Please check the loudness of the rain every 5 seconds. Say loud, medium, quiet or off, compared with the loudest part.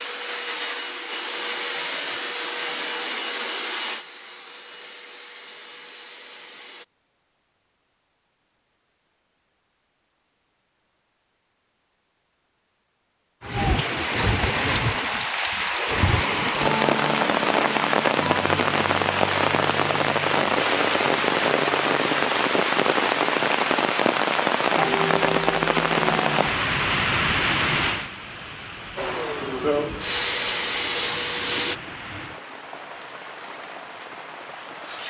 off, off, loud, loud, loud, loud, quiet.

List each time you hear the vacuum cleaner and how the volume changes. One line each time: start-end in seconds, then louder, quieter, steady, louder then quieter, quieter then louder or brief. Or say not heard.
0.0-6.8 quieter
28.9-31.8 brief.